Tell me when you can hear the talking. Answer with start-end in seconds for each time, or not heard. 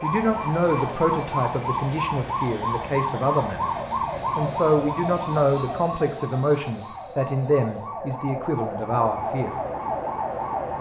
0.0-9.6.